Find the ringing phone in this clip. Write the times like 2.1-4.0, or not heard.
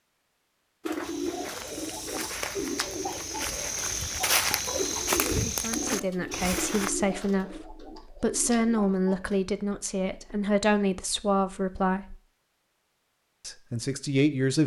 not heard.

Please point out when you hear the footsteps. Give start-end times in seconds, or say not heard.
1.0-6.9.